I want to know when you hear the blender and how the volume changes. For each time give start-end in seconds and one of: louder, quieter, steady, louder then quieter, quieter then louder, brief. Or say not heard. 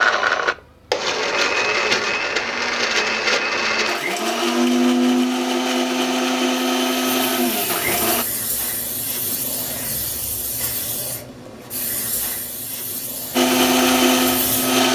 0.0-8.2 steady
13.3-14.9 brief.